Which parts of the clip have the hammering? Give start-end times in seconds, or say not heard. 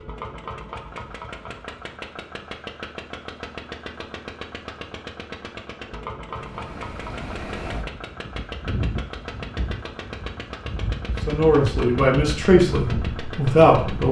not heard.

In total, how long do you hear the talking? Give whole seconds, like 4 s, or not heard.
3 s.